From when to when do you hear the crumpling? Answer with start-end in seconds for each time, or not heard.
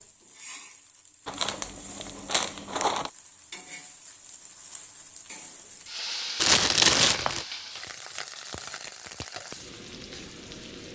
1.2-3.1, 6.3-7.5.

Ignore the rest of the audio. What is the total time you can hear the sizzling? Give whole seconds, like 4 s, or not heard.
11 s.